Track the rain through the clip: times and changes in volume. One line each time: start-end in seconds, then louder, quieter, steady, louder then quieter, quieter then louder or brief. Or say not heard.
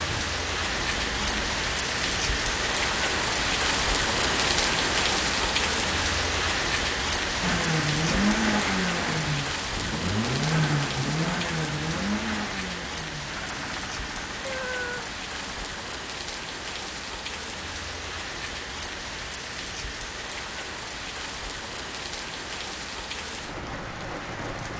0.0-24.7 quieter.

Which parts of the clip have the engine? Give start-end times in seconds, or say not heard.
0.0-1.6, 7.4-15.8.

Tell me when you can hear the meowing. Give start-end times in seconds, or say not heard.
14.4-15.2.